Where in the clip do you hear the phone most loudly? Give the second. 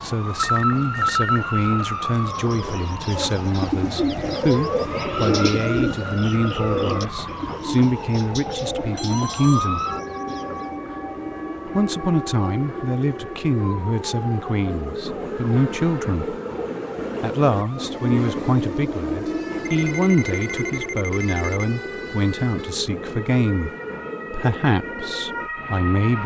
1 s.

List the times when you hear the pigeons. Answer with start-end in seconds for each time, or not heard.
2.2-10.8.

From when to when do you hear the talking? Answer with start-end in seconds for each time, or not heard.
0.0-9.8, 11.7-16.4, 17.2-23.7, 24.3-26.2.